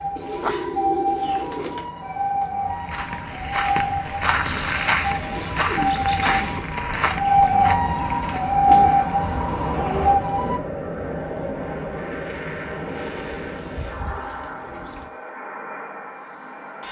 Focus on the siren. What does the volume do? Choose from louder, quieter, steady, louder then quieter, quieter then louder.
louder.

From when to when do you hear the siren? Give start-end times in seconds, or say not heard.
0.0-10.6.